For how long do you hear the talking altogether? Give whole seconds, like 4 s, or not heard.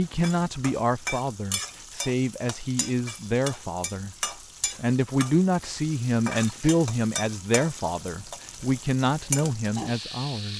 10 s.